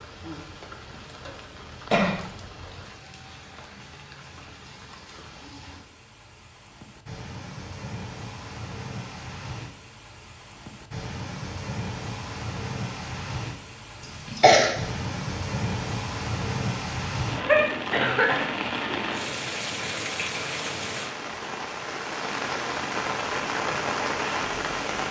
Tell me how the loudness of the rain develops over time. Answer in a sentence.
The loudness of the rain goes up.